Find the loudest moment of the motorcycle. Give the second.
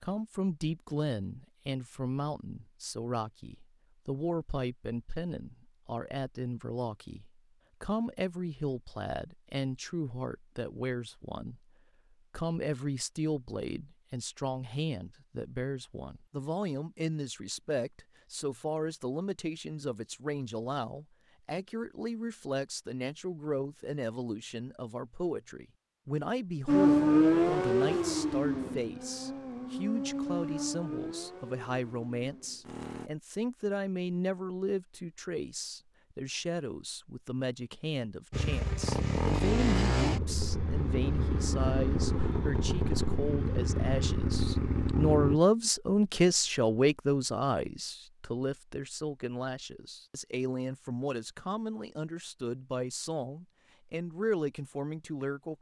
27 s.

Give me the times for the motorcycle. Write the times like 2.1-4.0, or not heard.
26.6-33.1, 38.3-45.4.